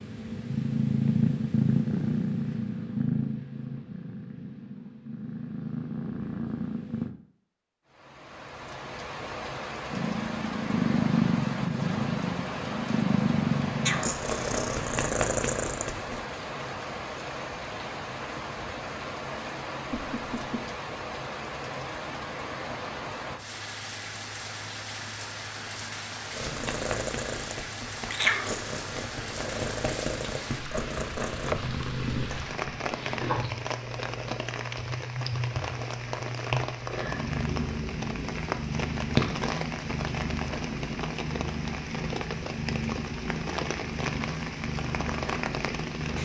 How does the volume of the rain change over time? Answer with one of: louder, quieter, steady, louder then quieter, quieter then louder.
steady.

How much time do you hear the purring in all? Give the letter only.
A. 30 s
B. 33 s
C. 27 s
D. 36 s
B.